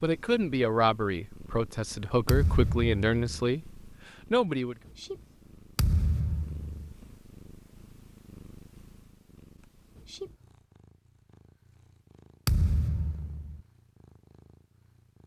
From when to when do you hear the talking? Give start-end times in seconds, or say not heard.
0.0-4.8.